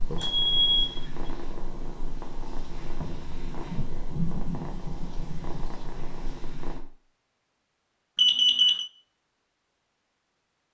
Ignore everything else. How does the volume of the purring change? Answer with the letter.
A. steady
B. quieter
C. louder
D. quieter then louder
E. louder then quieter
E.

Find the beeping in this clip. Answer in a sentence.
You can hear the beeping from 0.1 to 1.1 s and from 8.2 to 8.9 s.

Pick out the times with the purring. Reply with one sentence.
You can hear the purring from 0.0 to 6.8 s.